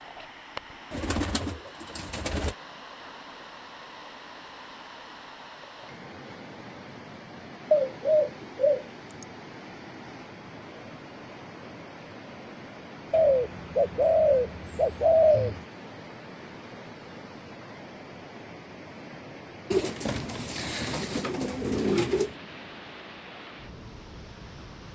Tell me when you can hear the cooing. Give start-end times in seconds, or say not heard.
0.9-2.5, 7.7-9.2, 13.1-15.6, 19.7-22.3.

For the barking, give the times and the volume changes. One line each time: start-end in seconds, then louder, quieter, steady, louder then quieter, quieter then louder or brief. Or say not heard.
not heard.